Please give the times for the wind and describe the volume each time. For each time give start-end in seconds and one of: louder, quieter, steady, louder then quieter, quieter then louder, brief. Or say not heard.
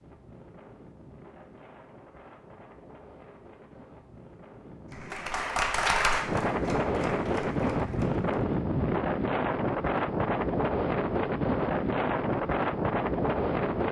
0.0-13.8 louder.